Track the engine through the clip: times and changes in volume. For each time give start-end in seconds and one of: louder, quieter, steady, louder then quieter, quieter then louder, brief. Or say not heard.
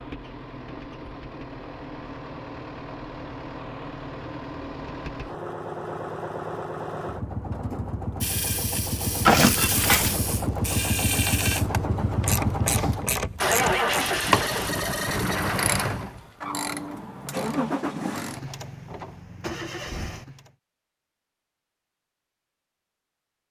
0.0-20.5 louder then quieter.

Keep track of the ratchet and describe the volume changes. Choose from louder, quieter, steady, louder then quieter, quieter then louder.
louder then quieter.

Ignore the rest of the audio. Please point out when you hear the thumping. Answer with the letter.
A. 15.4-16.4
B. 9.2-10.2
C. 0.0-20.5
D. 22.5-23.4
B.